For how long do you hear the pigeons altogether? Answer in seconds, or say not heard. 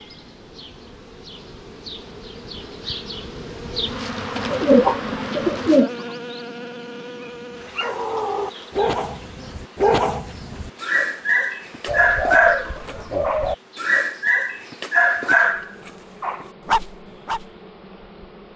3 s.